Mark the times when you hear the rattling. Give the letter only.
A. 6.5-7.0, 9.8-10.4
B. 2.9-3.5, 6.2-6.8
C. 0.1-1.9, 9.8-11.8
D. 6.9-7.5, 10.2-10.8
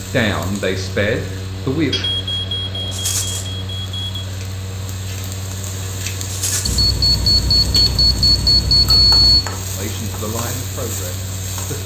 B.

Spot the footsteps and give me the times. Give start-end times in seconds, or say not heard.
not heard.